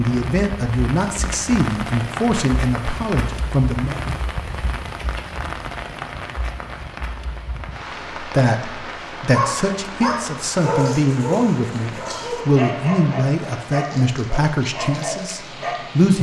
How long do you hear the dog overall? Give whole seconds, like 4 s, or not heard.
7 s.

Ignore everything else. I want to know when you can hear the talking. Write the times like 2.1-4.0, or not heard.
0.0-4.0, 8.2-16.1.